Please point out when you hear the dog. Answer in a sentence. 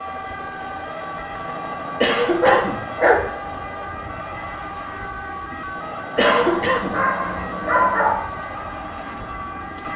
The dog can be heard from 2.4 to 3.2 s and from 6.2 to 8.2 s.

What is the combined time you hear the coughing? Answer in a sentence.
You can hear the coughing for 2 seconds altogether.